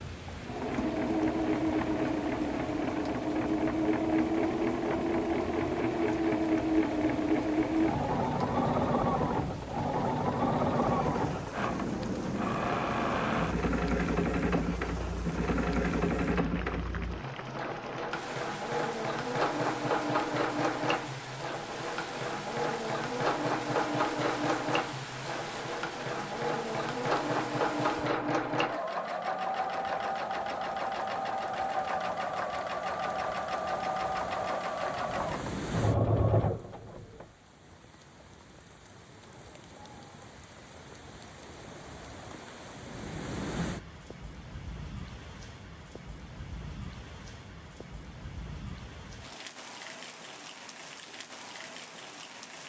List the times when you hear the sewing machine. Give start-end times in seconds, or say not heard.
0.2-37.2.